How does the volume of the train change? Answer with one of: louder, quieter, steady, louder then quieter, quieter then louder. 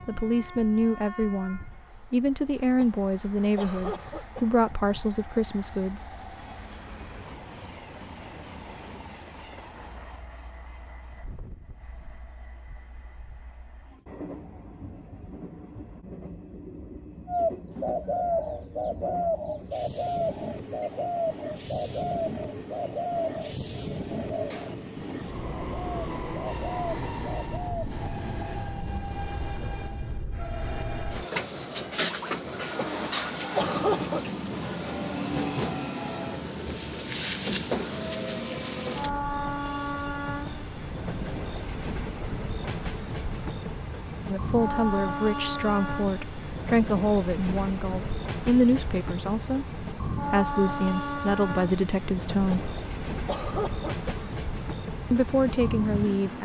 louder.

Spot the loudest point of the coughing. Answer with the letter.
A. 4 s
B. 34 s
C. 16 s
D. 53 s
B.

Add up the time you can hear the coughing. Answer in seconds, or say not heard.
5 s.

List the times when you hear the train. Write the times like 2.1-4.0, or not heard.
0.0-56.4.